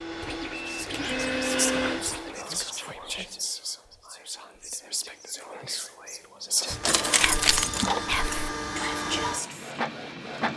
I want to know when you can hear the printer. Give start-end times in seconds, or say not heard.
0.0-2.5, 6.7-10.5.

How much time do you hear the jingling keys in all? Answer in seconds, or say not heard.
2 s.